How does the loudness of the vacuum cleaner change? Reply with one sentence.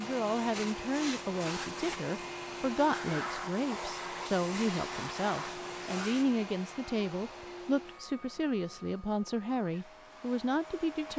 The loudness of the vacuum cleaner goes down.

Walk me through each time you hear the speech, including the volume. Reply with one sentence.
The speech can be heard from 0.0 to 11.1 s, at a steady volume.